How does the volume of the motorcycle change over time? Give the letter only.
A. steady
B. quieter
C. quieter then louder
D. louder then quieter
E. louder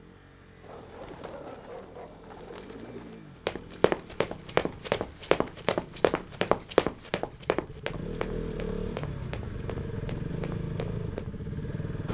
E.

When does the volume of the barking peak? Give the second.
2 s.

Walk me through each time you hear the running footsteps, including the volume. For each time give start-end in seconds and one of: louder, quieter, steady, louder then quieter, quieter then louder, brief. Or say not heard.
3.5-11.3 quieter.